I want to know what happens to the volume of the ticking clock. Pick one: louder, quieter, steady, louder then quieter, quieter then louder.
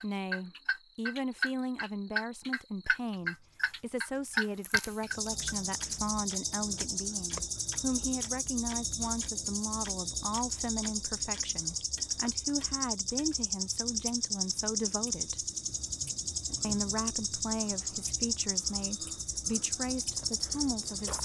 quieter.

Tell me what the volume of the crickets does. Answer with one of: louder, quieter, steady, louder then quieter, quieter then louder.
louder.